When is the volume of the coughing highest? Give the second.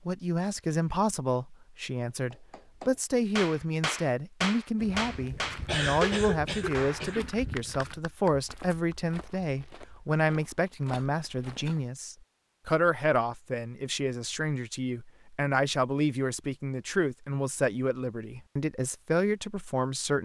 6 s.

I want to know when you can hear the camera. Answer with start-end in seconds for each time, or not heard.
not heard.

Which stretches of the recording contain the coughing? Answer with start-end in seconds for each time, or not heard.
5.3-7.3, 10.9-11.8.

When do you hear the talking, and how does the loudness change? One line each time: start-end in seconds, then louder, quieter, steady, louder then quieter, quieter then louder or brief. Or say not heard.
0.1-20.1 steady.